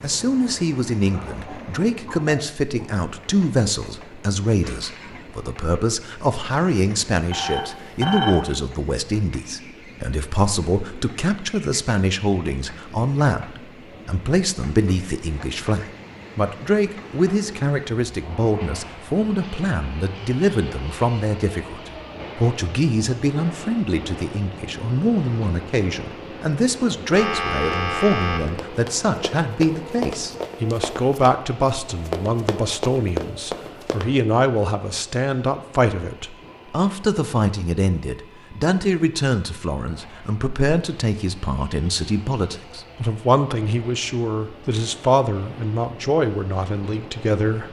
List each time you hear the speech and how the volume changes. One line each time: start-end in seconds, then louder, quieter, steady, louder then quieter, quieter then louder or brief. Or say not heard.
0.0-47.6 steady.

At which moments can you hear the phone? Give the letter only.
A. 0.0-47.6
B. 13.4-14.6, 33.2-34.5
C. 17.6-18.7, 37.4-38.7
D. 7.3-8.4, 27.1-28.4
D.